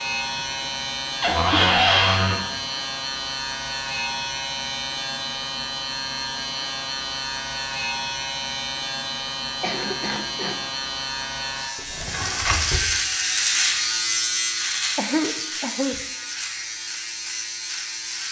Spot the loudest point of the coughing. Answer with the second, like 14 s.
15 s.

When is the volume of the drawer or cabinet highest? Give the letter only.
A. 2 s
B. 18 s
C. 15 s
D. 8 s
A.